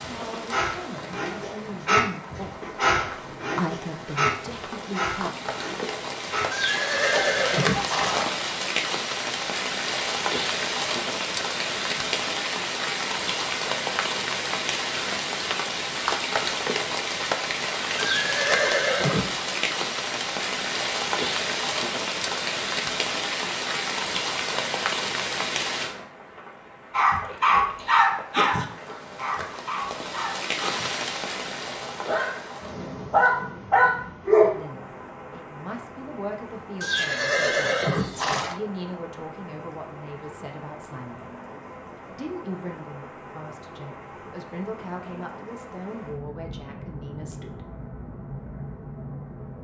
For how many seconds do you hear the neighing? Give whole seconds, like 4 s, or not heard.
5 s.